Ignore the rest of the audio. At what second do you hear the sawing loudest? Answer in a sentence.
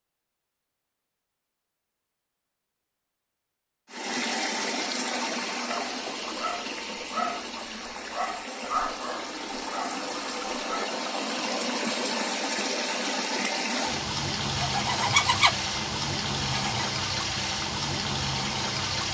The volume of the sawing peaks at 15 seconds.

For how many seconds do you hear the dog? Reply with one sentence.
You can hear the dog for 5 seconds altogether.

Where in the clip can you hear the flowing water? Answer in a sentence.
You can hear the flowing water from 3.9 to 19.1 s.